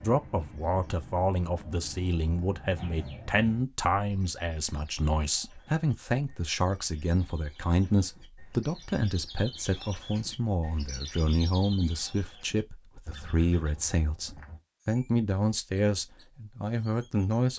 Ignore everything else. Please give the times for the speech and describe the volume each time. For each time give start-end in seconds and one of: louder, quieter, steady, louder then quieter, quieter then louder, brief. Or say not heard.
0.0-17.5 steady.